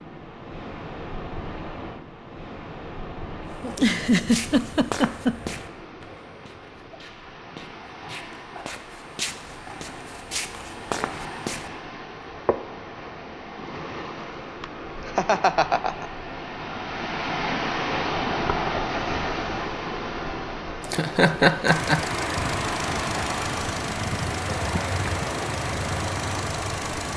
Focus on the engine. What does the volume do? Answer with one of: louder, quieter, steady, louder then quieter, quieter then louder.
steady.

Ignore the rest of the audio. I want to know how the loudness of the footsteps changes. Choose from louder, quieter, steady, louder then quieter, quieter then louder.
quieter then louder.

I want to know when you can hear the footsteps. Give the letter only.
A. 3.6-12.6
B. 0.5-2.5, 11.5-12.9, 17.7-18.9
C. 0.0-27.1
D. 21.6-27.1
A.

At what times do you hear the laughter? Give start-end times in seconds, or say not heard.
3.6-5.5, 14.6-16.1, 20.8-22.0.